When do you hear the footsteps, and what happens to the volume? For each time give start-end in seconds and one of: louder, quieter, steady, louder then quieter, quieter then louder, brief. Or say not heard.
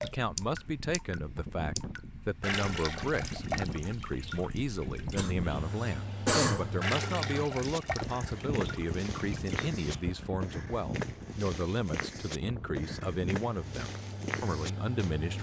7.6-15.1 steady.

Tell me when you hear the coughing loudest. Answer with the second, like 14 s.
6 s.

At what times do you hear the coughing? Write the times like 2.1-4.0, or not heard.
5.2-6.8.